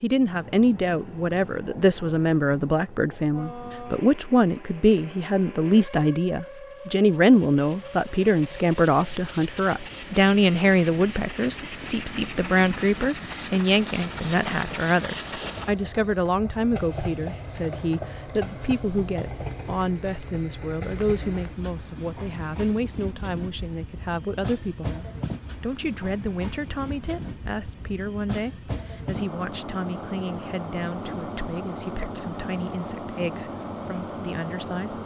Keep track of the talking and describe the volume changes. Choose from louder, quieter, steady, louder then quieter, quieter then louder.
quieter.